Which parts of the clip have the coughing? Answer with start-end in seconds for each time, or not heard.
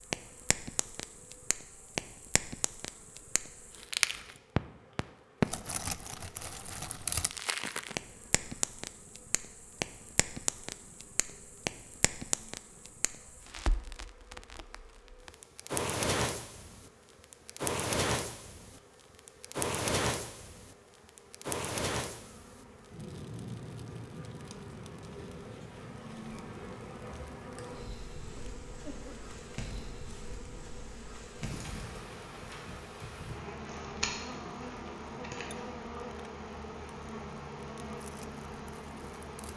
28.4-29.3.